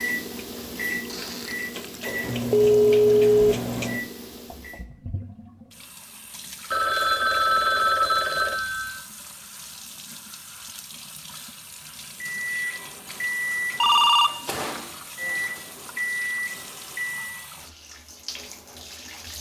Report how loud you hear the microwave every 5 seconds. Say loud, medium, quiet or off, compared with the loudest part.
loud, off, loud, loud.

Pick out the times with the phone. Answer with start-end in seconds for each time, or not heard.
2.5-3.5, 6.7-9.0, 13.8-14.7.